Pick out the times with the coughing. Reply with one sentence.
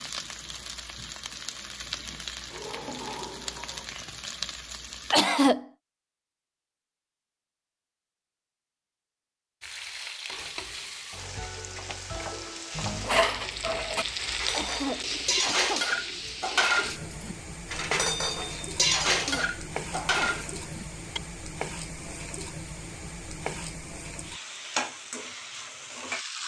The coughing can be heard from 5.1 to 5.7 s, from 14.5 to 15.8 s and from 19.1 to 20.4 s.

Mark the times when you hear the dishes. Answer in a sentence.
You can hear the dishes from 12.8 to 21.2 s.